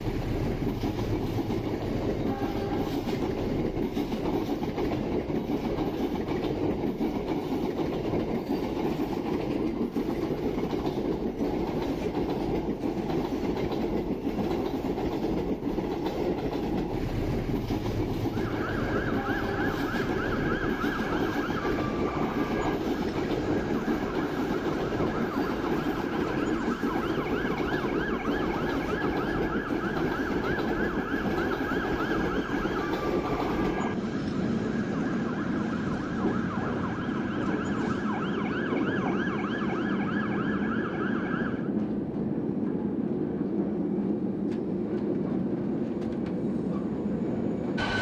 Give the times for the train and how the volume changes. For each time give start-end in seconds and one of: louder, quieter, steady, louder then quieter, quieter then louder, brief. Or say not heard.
0.0-47.9 steady.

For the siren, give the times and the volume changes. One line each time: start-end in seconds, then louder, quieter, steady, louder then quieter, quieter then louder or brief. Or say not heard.
18.3-41.7 steady.